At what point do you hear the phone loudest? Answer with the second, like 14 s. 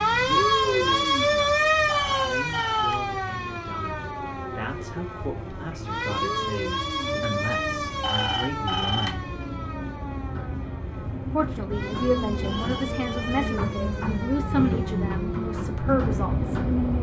9 s.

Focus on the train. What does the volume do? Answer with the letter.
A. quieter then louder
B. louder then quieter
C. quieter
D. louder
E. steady
D.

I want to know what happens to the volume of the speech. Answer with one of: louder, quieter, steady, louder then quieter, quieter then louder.
louder.